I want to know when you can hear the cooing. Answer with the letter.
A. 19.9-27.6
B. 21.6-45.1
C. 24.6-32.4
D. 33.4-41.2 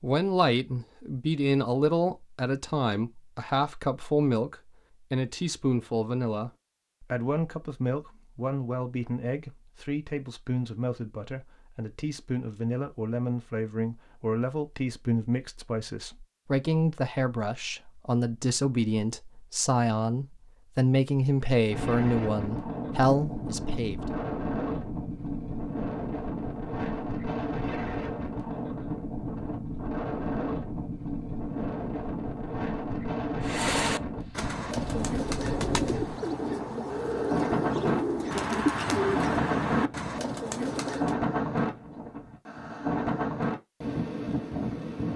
D.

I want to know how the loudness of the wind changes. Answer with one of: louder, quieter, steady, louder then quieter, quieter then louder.
steady.